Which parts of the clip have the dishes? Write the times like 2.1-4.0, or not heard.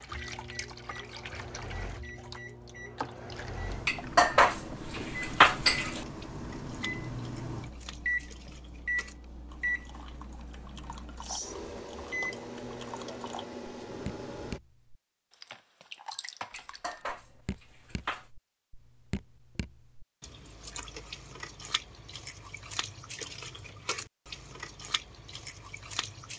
3.9-6.0, 16.5-18.3.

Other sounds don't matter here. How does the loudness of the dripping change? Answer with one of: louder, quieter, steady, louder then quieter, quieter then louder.
quieter then louder.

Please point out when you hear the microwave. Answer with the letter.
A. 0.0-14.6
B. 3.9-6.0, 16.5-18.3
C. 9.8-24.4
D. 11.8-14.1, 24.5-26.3
A.